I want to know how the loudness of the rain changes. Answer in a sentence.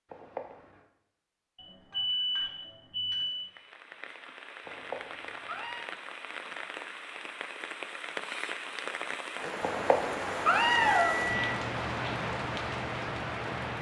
The loudness of the rain goes up.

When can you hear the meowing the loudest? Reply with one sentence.
The loudest moment of the meowing is at 11 seconds.